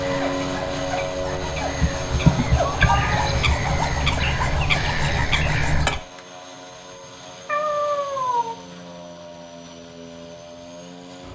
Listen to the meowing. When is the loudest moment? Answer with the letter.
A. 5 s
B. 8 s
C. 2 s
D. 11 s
C.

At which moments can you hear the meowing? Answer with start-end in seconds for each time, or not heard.
1.8-3.8, 7.5-8.6.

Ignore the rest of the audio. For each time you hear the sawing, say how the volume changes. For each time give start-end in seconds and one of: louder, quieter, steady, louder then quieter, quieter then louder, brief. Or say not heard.
0.0-6.2 louder.